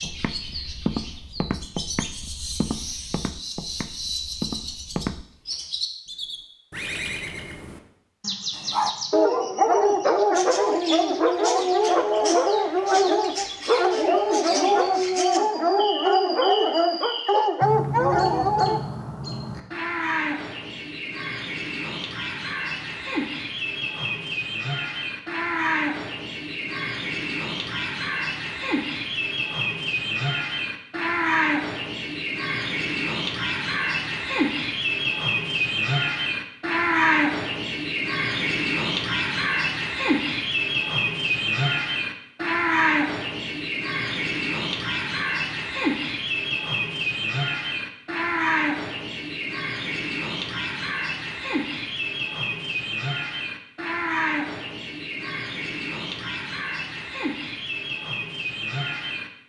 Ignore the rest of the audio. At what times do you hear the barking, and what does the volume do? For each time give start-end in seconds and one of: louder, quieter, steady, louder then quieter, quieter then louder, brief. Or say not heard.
8.5-18.8 steady.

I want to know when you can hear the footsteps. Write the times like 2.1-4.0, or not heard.
0.0-5.2.